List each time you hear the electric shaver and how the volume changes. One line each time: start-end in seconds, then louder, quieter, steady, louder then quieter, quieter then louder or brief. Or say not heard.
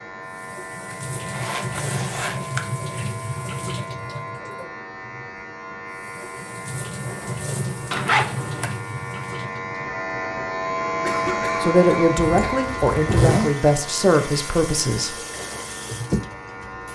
0.0-16.9 louder then quieter.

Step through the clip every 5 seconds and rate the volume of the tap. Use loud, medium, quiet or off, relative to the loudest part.
loud, loud, medium, loud.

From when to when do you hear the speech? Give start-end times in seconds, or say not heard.
11.6-15.2.